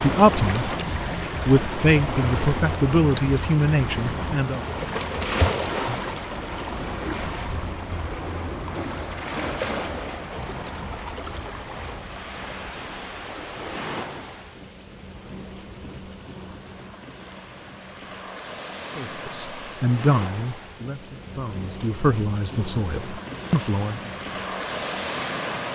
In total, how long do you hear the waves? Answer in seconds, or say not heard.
26 s.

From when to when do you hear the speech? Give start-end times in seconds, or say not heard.
0.0-4.7, 18.9-24.1.